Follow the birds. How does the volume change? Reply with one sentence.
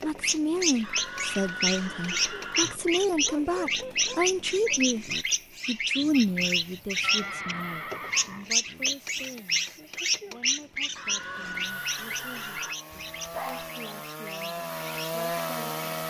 The loudness of the birds goes down.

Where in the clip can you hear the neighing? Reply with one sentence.
The neighing can be heard from 0.8 to 2.8 s, from 6.0 to 8.5 s and from 10.9 to 12.8 s.